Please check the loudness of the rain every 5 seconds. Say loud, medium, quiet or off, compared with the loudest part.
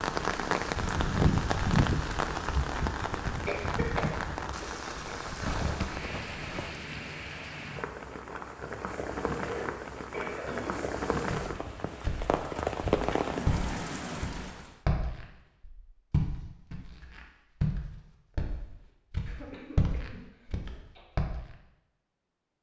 loud, medium, loud, off, off.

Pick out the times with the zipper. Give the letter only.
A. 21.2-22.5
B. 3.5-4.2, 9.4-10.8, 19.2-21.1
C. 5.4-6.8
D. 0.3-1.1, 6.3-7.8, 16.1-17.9
C.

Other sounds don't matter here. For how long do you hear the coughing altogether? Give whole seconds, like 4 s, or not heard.
4 s.